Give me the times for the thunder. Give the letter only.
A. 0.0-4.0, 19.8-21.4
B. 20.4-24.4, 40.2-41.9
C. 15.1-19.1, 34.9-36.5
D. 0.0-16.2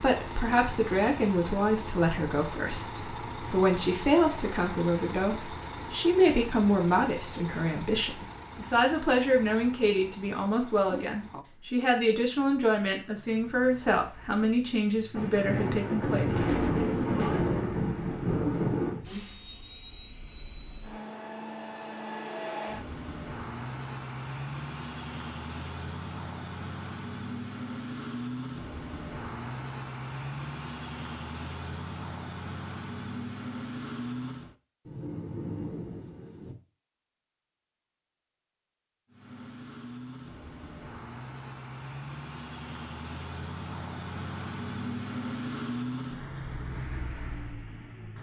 C.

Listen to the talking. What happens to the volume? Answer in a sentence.
The volume of the talking stays about the same.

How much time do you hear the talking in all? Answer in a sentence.
The talking can be heard for 16 seconds in total.